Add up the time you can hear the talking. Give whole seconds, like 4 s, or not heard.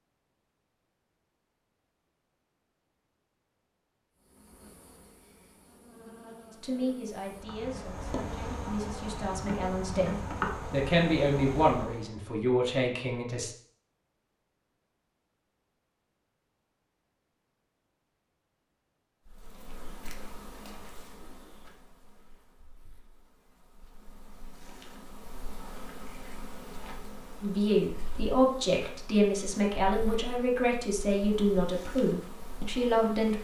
13 s.